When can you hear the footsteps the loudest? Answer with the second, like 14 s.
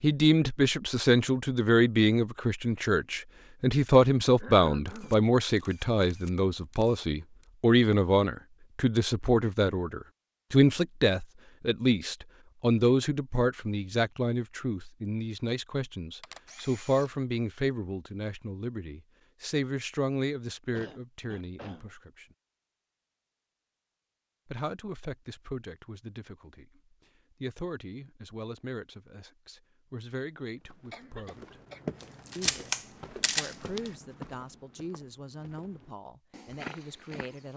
32 s.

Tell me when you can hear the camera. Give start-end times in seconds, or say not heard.
4.8-7.5, 16.2-17.1, 32.0-33.9.